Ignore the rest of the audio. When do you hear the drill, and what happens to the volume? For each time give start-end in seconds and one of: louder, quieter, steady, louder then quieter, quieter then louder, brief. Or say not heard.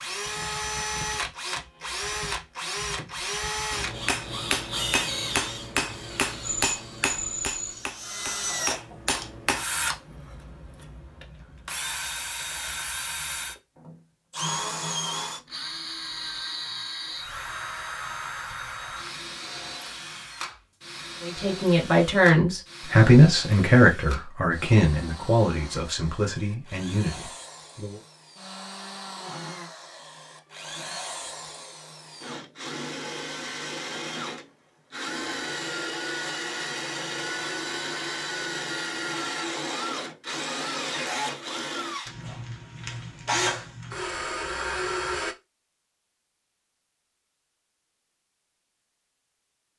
0.0-45.4 quieter then louder.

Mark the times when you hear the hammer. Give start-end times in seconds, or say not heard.
3.7-9.7.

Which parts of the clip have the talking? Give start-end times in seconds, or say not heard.
21.2-28.0.